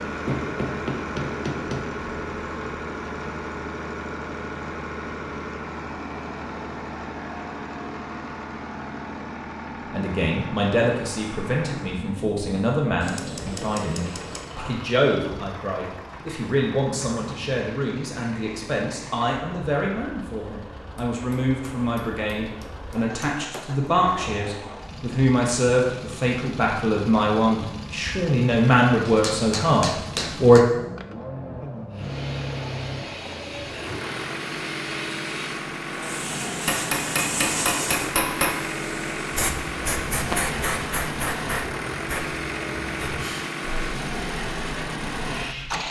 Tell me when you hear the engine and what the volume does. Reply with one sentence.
The engine can be heard from 0.0 to 45.8 s, getting quieter then louder.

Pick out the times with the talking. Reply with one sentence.
The talking can be heard from 9.8 to 30.6 s.